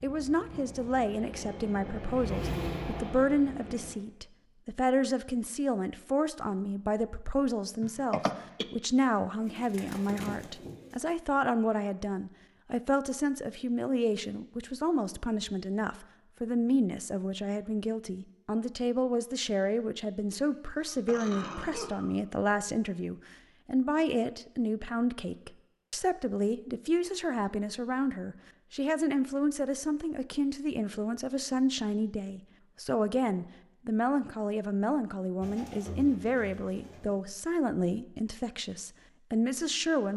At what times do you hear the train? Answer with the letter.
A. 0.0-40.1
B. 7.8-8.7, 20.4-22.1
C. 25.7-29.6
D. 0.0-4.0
D.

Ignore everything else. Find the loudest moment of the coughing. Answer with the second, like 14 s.
8 s.